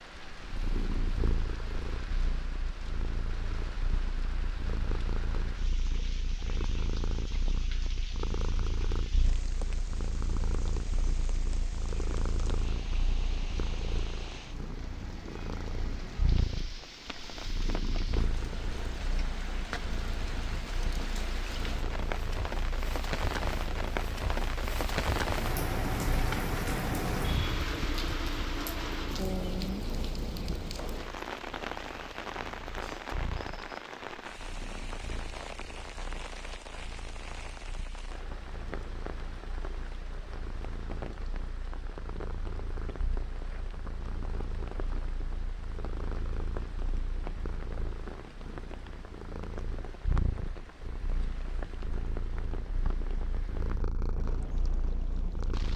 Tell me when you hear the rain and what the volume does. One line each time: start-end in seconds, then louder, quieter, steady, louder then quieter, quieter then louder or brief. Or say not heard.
0.0-55.7 louder then quieter.